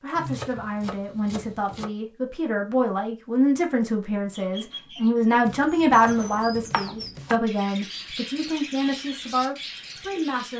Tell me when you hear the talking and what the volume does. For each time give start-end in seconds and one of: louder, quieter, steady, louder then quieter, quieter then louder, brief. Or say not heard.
0.0-10.5 louder then quieter.